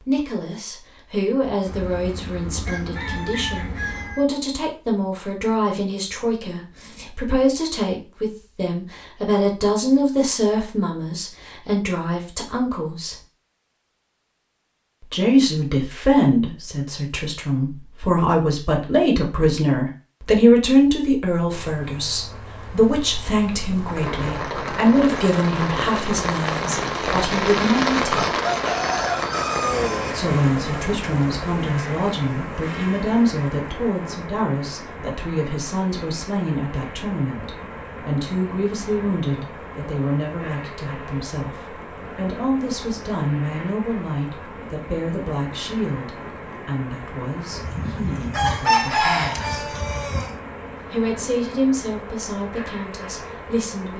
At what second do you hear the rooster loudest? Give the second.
49 s.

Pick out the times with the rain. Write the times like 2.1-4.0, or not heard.
21.4-53.9.